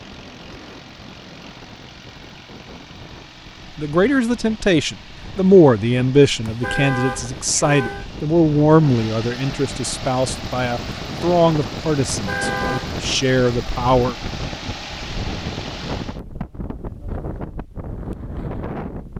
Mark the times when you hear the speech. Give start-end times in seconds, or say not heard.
3.8-14.2.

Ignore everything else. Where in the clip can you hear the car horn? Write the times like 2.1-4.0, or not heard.
6.5-8.1, 12.1-13.0.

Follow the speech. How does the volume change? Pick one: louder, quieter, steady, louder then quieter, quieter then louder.
quieter.